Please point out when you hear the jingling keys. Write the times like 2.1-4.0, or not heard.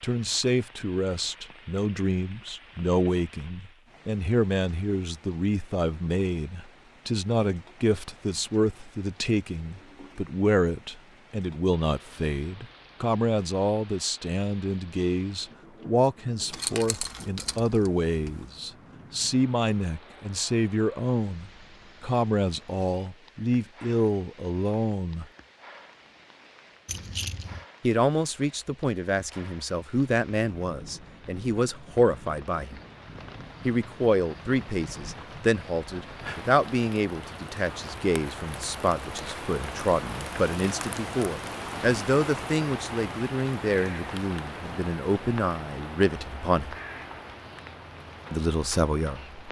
16.5-18.4, 26.9-27.6.